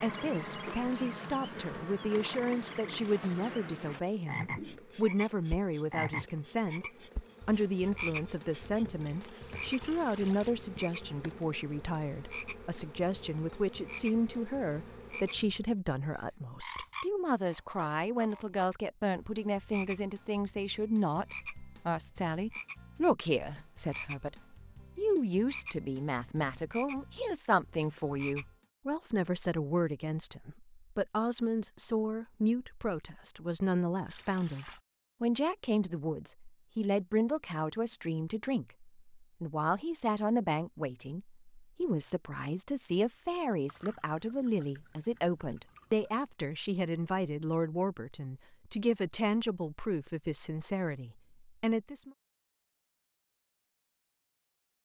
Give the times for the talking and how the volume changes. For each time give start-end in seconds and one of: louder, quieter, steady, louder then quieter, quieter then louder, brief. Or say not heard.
0.0-52.1 steady.